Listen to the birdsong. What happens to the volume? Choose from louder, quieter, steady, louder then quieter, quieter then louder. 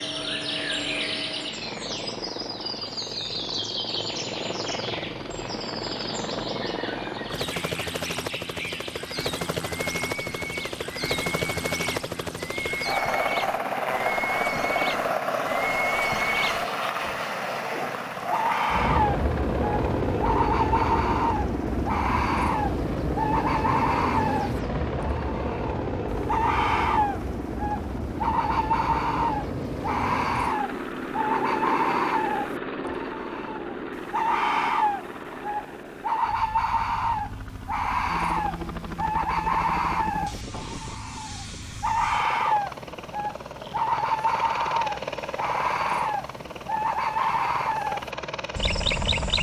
louder.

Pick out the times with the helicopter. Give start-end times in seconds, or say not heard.
0.0-49.3.